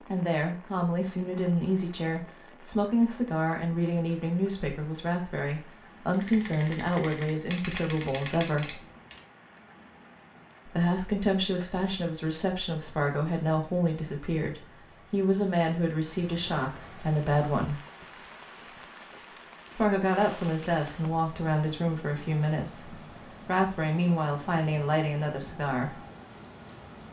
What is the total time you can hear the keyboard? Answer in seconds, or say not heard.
3 s.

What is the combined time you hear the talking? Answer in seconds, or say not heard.
22 s.